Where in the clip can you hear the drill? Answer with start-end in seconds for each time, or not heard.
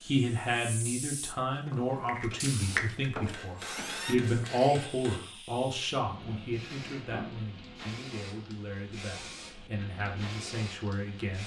1.6-4.2.